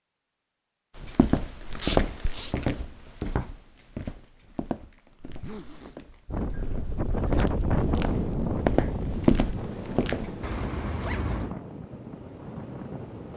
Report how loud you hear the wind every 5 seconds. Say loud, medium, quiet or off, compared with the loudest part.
off, loud, medium.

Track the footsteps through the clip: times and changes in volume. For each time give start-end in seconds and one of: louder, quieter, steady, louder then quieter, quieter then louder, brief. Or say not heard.
0.9-10.7 quieter then louder.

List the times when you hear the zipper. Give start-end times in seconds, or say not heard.
1.7-2.5, 5.2-6.0, 10.4-11.6.